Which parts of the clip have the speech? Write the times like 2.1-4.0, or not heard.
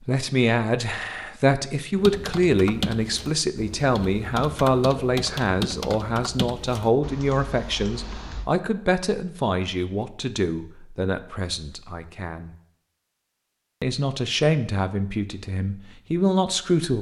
0.1-12.6, 13.8-16.9.